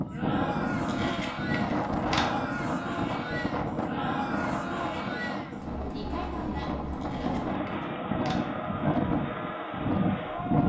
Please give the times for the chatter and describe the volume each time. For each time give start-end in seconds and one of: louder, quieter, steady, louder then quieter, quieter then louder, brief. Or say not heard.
0.0-10.6 steady.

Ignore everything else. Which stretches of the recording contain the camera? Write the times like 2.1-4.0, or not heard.
0.8-2.2, 7.0-8.4.